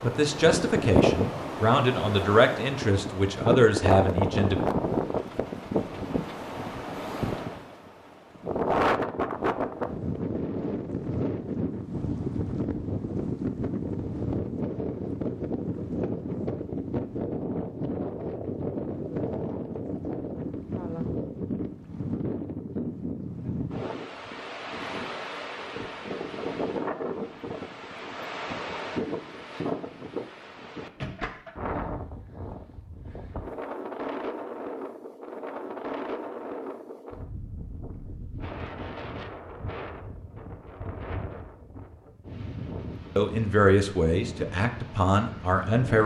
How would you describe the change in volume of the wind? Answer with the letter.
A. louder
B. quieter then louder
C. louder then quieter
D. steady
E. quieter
E.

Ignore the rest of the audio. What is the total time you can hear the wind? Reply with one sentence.
The wind can be heard for 46 seconds in total.